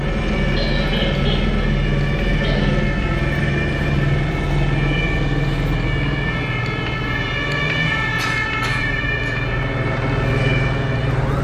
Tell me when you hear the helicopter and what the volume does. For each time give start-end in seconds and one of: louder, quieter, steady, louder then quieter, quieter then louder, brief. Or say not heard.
0.0-11.3 quieter then louder.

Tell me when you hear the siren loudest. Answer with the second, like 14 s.
8 s.